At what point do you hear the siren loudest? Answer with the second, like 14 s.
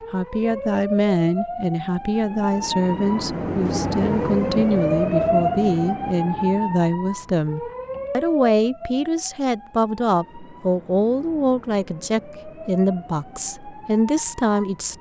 5 s.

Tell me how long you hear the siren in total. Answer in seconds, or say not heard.
15 s.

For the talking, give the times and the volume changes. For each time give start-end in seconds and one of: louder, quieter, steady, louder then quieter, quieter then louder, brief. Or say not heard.
0.1-14.9 steady.